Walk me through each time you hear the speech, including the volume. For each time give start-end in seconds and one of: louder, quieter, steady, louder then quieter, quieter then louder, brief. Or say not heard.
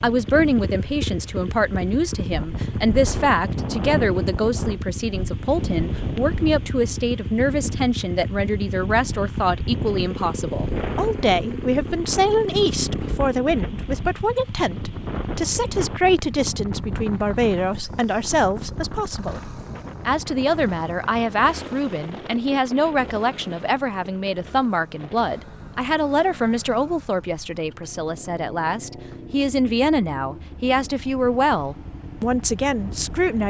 0.0-33.4 steady.